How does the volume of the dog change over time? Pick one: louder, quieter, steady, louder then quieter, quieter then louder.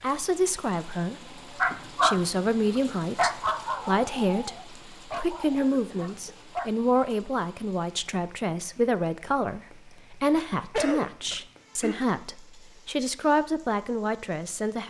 quieter.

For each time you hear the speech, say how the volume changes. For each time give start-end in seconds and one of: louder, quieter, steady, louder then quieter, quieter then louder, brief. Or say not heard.
0.0-14.8 steady.